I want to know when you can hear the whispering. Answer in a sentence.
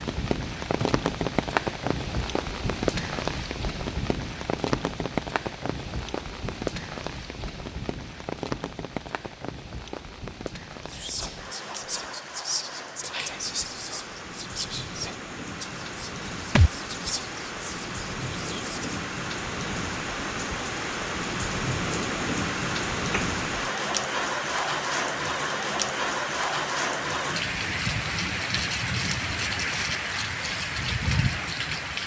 You can hear the whispering from 10.8 to 18.9 s.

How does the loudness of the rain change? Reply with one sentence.
The volume of the rain goes down, then up.